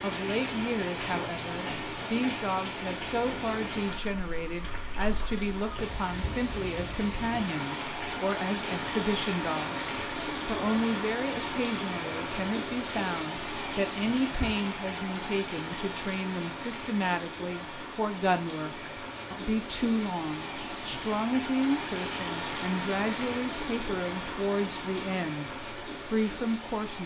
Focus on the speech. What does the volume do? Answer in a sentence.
The volume of the speech stays about the same.